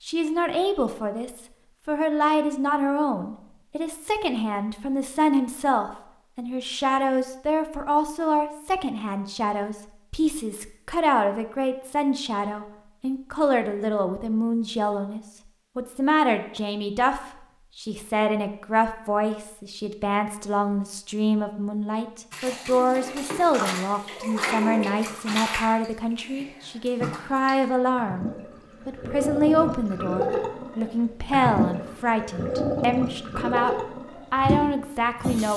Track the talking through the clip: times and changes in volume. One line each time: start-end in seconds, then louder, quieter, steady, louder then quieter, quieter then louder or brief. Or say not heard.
0.0-35.5 steady.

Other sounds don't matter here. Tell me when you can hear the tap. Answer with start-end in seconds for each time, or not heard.
22.3-35.5.